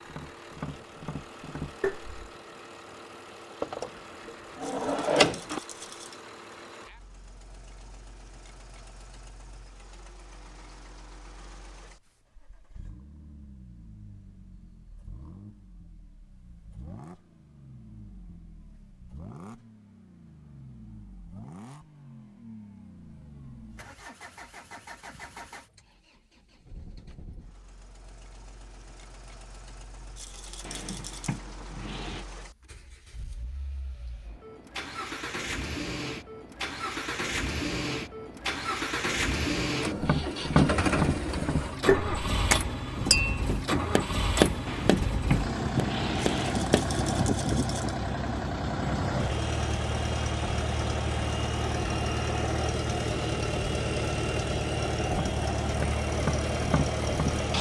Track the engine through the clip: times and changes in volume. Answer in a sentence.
The engine can be heard from 0.0 to 57.5 s, getting louder.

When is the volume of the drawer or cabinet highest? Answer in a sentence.
The loudest moment of the drawer or cabinet is at 5 seconds.